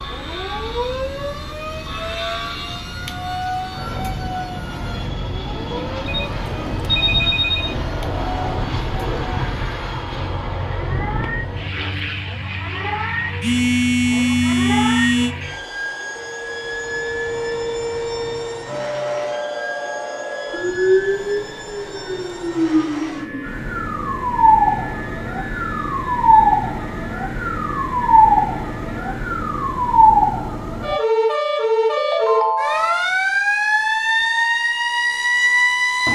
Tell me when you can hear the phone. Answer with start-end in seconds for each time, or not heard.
6.0-7.8, 13.4-15.3, 31.9-33.0.